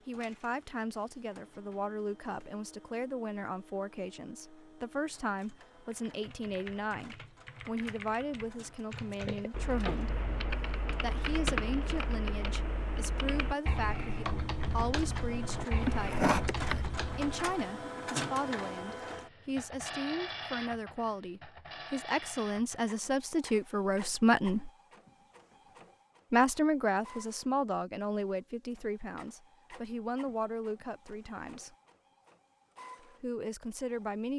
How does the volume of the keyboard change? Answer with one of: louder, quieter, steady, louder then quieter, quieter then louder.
louder.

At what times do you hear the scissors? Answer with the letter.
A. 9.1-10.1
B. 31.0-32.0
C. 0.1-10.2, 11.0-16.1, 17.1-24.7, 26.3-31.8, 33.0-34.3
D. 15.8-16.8
A.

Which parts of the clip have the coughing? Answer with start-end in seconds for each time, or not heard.
15.8-16.8.